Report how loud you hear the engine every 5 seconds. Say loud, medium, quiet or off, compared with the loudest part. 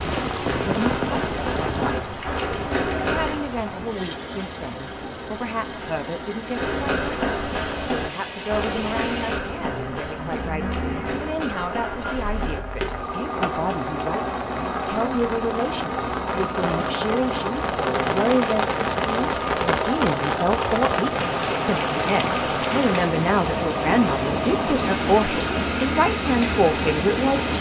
medium, medium, loud, loud, loud, loud.